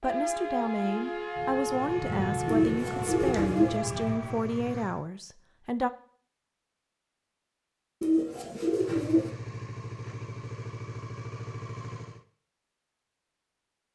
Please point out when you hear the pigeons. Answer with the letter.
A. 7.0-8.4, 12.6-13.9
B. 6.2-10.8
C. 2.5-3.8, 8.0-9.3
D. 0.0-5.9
C.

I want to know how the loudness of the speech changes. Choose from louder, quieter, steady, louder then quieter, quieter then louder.
steady.